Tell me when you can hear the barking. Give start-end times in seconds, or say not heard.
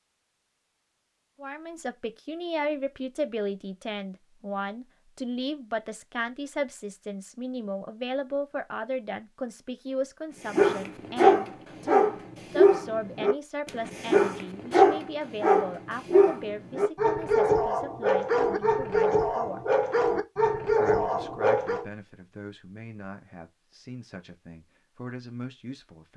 10.5-21.9.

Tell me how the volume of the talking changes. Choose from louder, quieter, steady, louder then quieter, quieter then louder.
quieter.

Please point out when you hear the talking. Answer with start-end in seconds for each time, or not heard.
1.4-19.6, 20.7-26.1.